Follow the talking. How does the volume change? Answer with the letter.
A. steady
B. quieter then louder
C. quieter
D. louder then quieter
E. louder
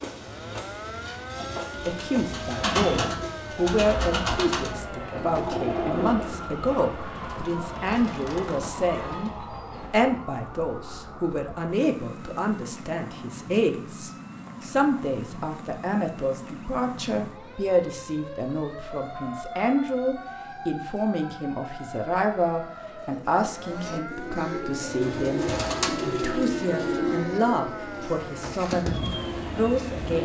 A.